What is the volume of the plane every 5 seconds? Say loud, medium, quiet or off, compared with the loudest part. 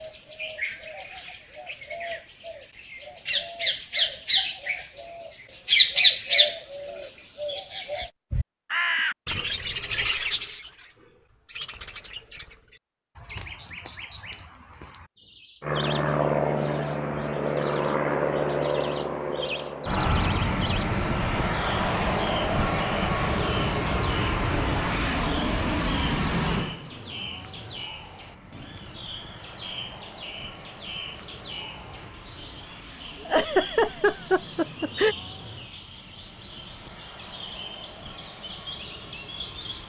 off, off, off, loud, loud, medium, quiet, quiet.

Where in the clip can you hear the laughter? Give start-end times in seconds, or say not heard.
33.2-35.1.